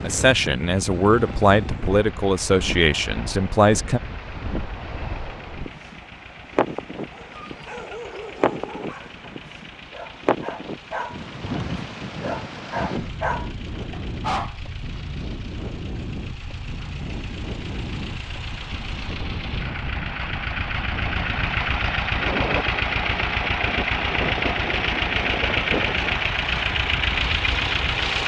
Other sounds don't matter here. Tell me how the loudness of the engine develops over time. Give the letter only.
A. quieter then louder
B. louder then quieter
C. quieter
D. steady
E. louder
E.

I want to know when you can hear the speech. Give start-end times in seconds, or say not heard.
0.0-4.0.